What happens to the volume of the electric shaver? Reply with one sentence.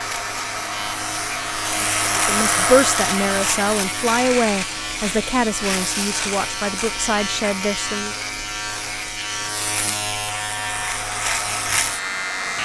The loudness of the electric shaver stays about the same.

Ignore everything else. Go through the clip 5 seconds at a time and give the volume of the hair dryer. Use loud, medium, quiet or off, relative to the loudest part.
loud, off, medium.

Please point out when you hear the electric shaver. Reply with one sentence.
The electric shaver can be heard from 0.0 to 12.6 s.